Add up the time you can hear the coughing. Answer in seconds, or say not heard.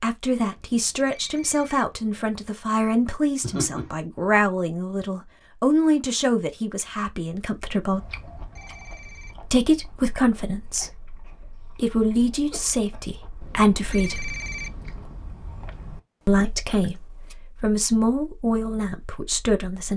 3 s.